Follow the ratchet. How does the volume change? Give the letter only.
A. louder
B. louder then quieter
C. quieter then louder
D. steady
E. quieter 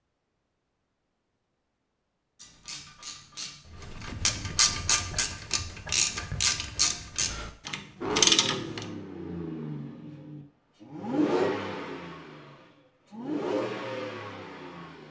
A.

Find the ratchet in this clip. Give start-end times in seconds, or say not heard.
2.4-8.8.